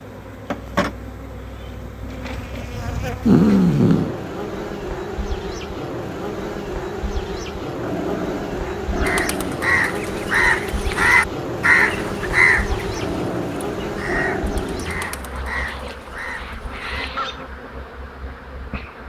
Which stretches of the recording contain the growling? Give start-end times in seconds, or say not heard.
3.2-4.2, 7.8-9.7, 12.9-15.3.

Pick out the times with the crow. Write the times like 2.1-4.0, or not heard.
9.0-17.4.